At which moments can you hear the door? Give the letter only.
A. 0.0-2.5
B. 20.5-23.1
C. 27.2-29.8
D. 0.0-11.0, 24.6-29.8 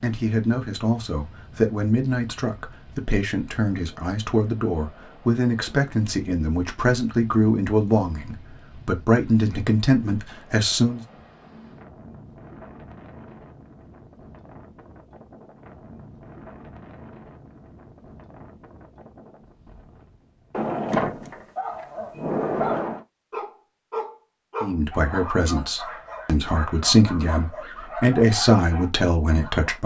B.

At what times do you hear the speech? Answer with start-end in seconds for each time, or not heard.
0.0-11.0, 24.6-29.8.